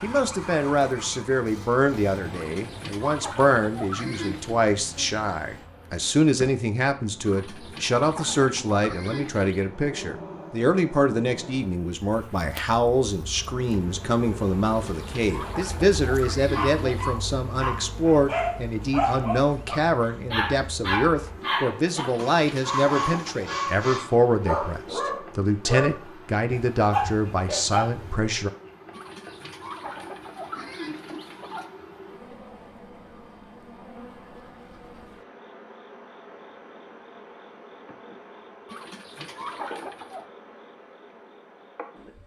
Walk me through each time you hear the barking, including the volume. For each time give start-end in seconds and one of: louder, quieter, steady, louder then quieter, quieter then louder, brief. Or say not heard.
16.5-28.1 steady.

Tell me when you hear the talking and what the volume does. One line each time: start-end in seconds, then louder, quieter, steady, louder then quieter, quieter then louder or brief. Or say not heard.
0.0-28.5 steady.